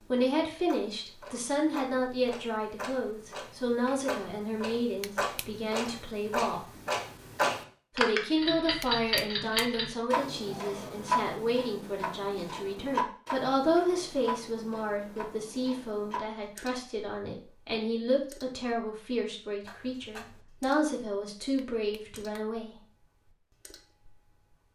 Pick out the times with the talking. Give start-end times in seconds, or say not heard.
0.0-6.7, 8.0-22.8.